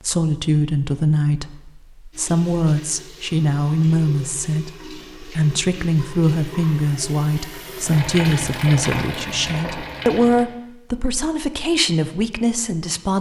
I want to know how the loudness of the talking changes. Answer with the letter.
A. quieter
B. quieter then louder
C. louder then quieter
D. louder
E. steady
E.